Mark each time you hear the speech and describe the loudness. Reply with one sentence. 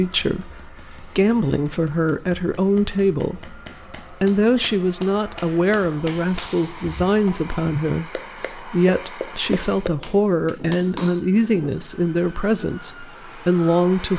The speech can be heard from 0.0 to 14.1 s, at a steady volume.